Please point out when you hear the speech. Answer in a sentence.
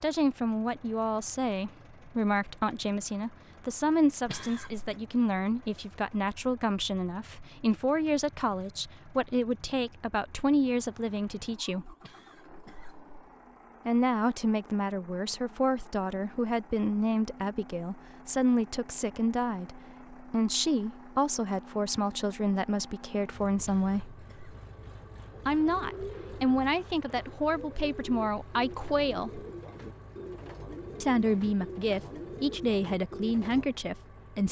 You can hear the speech from 0.0 to 11.9 s, from 13.8 to 24.1 s, from 25.4 to 29.4 s and from 31.0 to 34.4 s.